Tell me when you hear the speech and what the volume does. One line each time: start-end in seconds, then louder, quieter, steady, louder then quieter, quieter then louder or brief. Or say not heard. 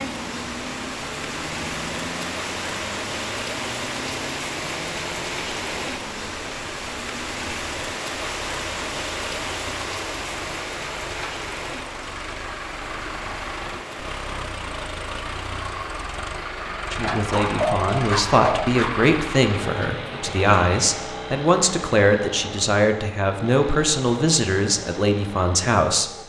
16.9-26.1 steady.